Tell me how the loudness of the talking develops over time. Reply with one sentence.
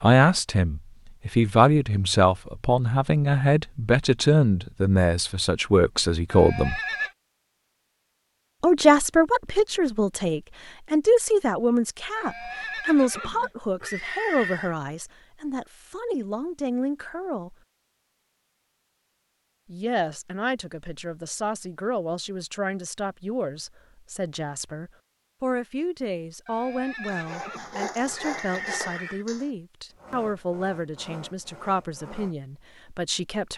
The volume of the talking goes down.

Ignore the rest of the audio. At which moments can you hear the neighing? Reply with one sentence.
The neighing can be heard from 6.3 to 7.2 s, from 12.2 to 14.8 s and from 26.4 to 29.2 s.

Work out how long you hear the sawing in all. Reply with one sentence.
You can hear the sawing for 5 seconds altogether.